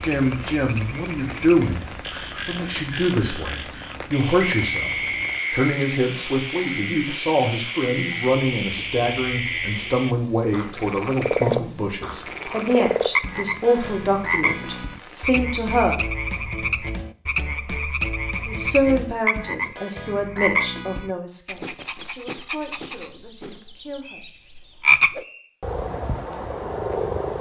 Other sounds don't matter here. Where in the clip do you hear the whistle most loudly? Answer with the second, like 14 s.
5 s.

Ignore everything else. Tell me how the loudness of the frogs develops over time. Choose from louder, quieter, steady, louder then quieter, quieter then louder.
louder.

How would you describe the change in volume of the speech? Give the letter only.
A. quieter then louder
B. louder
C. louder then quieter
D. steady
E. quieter
E.